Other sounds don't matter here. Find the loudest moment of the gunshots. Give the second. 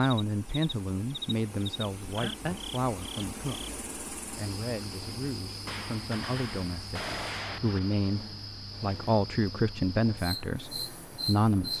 7 s.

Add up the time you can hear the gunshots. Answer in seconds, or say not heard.
2 s.